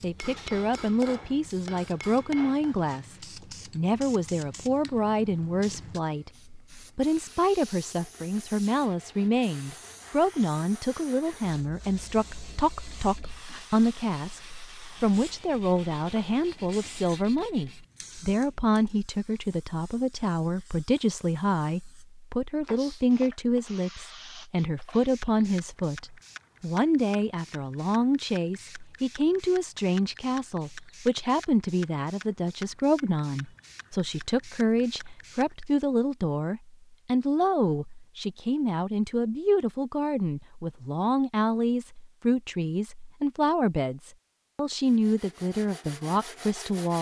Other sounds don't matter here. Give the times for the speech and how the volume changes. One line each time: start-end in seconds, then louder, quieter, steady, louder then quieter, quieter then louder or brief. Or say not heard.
0.0-46.9 steady.